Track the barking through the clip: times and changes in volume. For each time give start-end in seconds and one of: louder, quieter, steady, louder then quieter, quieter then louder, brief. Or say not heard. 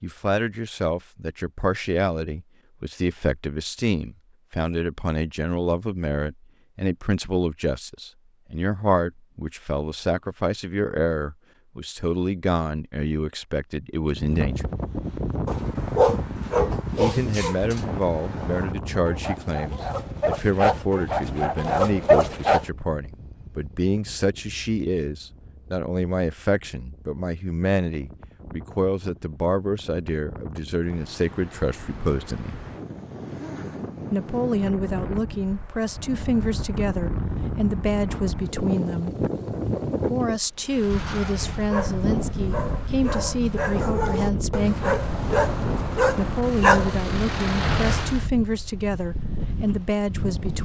15.4-22.6 quieter then louder
40.6-48.2 louder.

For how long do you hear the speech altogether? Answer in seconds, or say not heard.
45 s.